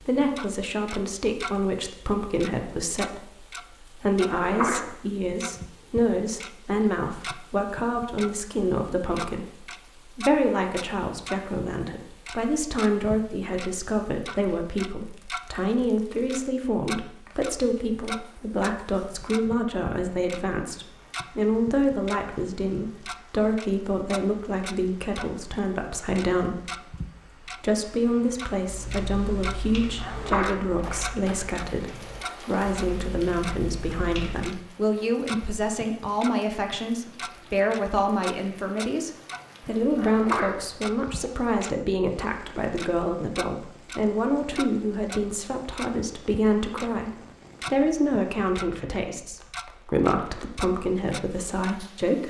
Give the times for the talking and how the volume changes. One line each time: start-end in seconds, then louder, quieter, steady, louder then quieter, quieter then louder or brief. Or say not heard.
0.0-52.2 steady.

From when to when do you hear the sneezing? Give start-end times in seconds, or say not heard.
4.2-4.9, 30.0-30.6, 40.0-40.6.